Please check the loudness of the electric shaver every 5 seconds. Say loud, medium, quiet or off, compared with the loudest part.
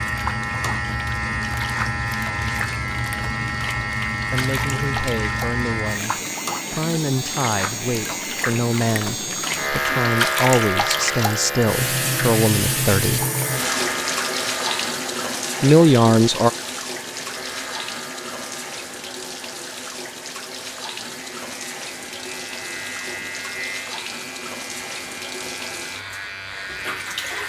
loud, loud, loud, quiet, medium, medium.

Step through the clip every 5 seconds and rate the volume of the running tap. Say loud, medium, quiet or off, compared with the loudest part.
medium, medium, loud, medium, medium, medium.